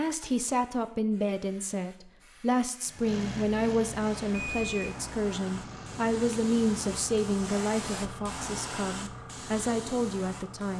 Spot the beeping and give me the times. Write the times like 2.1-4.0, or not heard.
4.3-5.0.